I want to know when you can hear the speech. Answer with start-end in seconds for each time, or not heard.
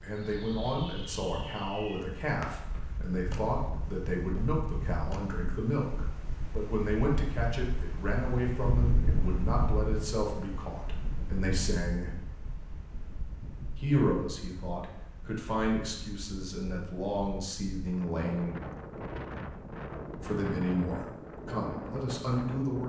0.0-12.1, 13.8-18.6, 20.2-22.8.